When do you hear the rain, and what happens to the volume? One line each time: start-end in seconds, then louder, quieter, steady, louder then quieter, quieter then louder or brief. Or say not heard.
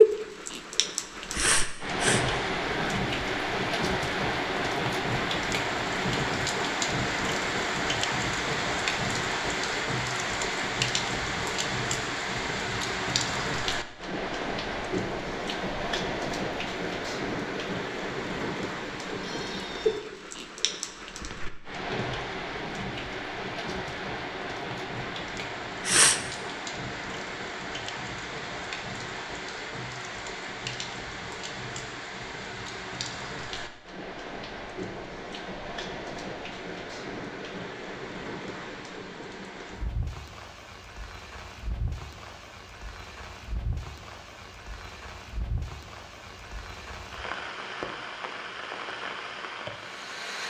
0.0-50.4 quieter.